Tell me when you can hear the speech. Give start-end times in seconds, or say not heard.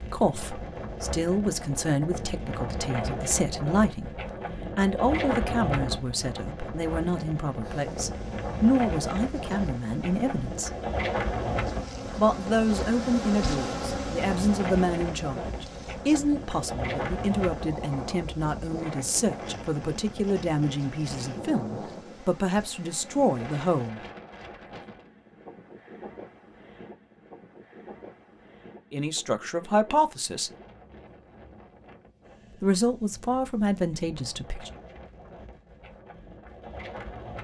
0.0-4.2, 4.8-10.8, 12.2-24.0, 28.9-30.5, 32.6-34.7.